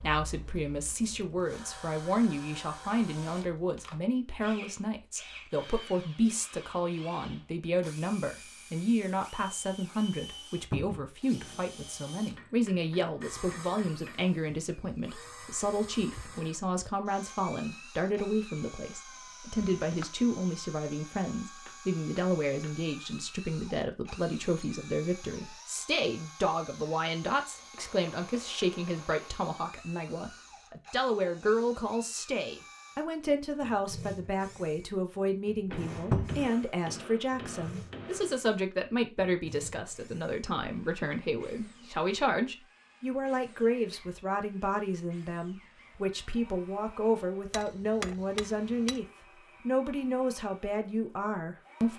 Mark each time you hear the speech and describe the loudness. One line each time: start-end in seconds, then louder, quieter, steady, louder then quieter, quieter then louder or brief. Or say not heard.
0.0-49.0 steady
49.6-51.9 brief.